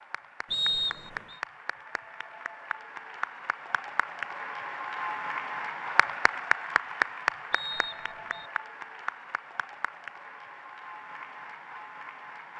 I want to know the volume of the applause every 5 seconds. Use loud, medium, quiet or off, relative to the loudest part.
medium, loud, medium.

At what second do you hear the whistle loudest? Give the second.
1 s.